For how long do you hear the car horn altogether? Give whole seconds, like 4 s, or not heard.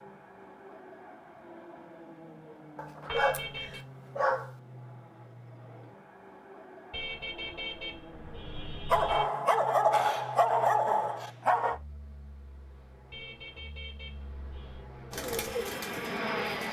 5 s.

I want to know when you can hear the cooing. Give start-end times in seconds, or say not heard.
15.1-16.6.